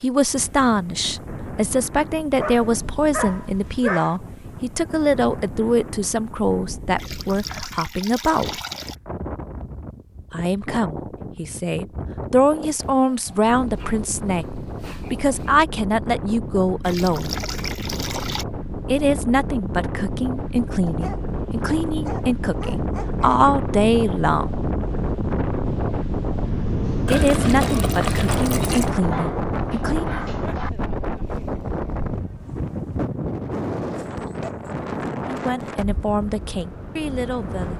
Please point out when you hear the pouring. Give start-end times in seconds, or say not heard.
7.0-8.9, 16.8-18.4, 27.1-28.9.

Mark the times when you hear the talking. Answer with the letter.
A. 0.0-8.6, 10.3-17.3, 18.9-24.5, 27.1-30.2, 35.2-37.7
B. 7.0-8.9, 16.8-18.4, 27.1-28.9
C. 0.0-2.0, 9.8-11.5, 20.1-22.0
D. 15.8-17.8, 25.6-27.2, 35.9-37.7
A.